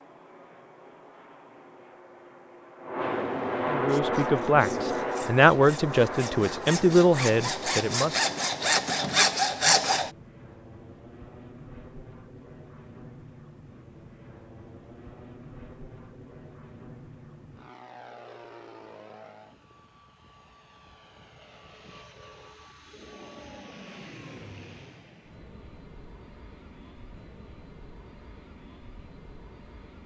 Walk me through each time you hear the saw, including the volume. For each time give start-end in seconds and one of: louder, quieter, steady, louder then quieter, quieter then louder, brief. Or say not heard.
3.9-10.1 louder.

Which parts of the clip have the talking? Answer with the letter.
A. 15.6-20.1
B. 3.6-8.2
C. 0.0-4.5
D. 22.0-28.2
B.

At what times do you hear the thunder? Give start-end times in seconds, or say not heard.
not heard.